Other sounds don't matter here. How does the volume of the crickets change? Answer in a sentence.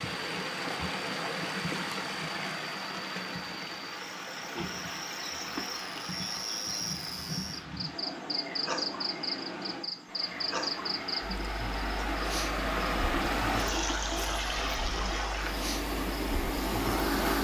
The loudness of the crickets goes up, then down.